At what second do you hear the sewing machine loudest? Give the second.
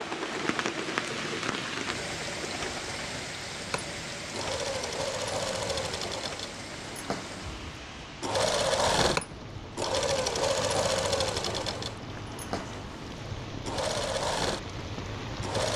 9 s.